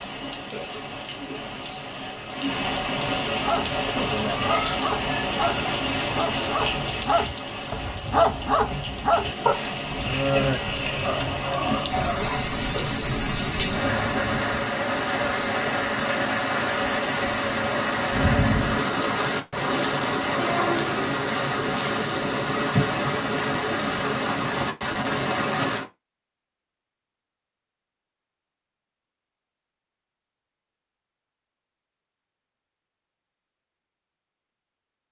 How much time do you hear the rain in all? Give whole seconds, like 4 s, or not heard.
26 s.